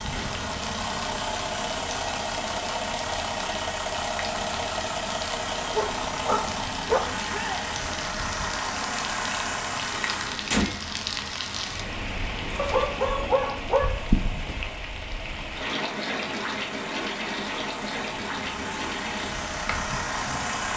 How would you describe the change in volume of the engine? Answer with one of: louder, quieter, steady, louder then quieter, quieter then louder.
quieter then louder.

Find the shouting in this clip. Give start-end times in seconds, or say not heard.
7.2-7.7.